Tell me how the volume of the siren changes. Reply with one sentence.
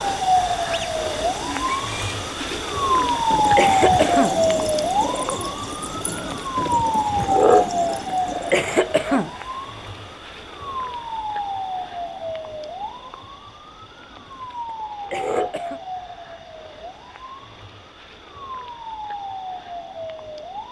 The loudness of the siren goes down.